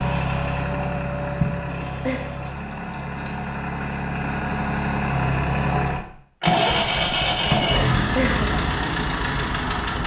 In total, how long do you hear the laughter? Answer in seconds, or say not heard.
2 s.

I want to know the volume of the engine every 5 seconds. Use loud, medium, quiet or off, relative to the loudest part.
medium, loud.